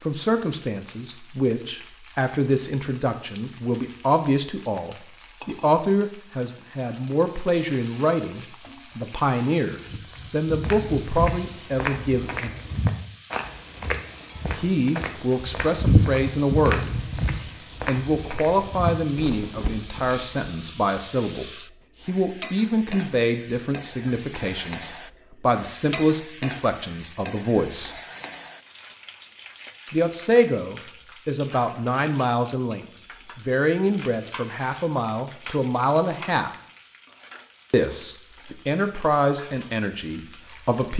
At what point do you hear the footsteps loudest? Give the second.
16 s.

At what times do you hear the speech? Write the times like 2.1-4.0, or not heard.
0.0-12.6, 14.6-17.0, 17.9-27.9, 29.9-36.5, 37.7-40.9.